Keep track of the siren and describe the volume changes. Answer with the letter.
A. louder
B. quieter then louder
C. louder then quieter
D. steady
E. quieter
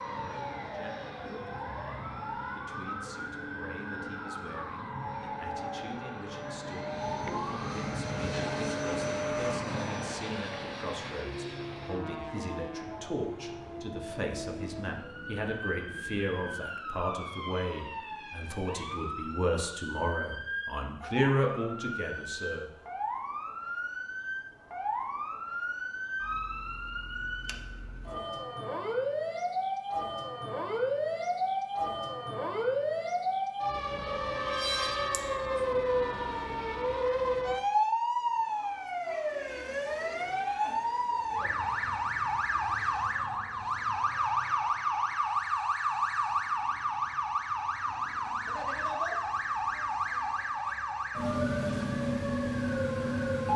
A.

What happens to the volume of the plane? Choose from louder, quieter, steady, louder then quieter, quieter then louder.
louder then quieter.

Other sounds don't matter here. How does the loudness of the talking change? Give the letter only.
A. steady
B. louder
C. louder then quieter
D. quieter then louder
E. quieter
B.